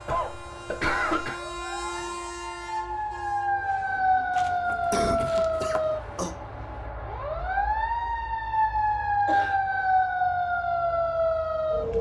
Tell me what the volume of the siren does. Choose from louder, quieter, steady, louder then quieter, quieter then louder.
louder.